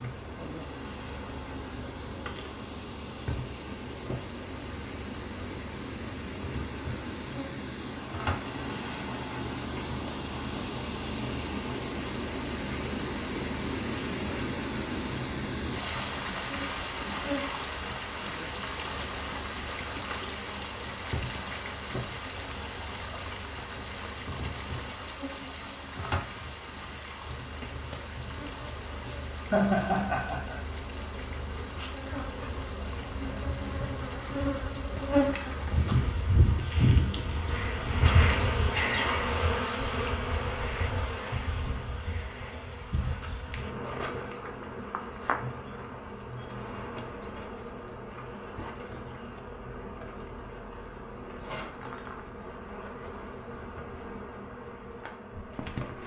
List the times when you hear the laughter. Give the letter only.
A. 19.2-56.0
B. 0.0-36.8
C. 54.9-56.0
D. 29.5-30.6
D.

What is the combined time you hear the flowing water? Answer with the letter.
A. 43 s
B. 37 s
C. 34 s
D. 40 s
B.